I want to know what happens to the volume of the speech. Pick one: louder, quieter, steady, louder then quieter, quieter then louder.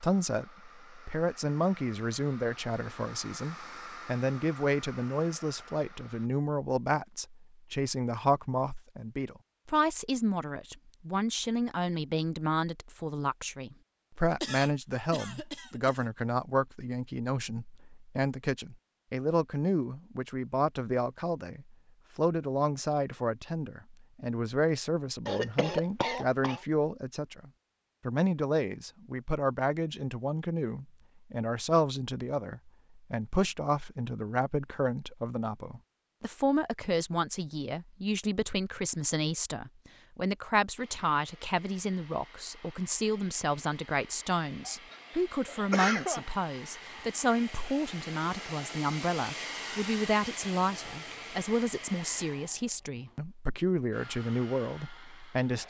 steady.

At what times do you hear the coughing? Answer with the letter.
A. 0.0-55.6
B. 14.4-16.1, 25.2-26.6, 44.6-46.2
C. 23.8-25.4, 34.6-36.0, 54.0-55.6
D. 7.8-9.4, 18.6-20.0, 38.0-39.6
B.